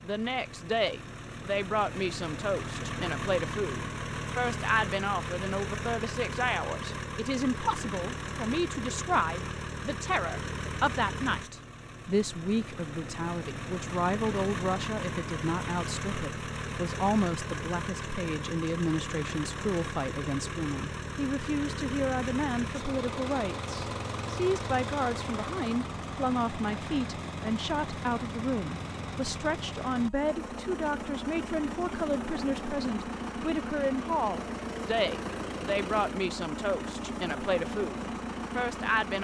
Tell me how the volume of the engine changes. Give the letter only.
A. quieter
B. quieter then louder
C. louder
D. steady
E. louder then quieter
D.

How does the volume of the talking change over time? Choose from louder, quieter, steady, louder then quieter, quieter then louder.
steady.